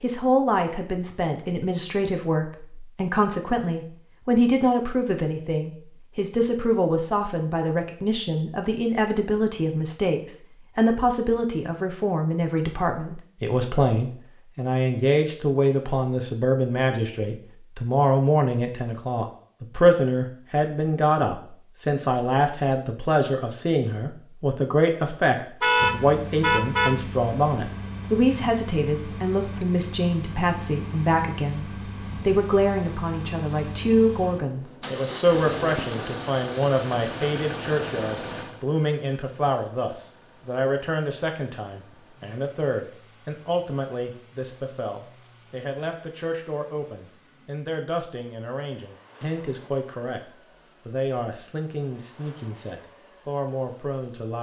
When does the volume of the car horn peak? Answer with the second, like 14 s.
26 s.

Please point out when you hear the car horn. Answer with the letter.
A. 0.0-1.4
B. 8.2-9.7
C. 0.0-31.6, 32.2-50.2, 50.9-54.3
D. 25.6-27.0
D.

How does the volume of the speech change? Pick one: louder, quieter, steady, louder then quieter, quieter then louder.
quieter.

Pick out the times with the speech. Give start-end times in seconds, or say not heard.
0.0-31.6, 32.2-50.2, 50.9-54.3.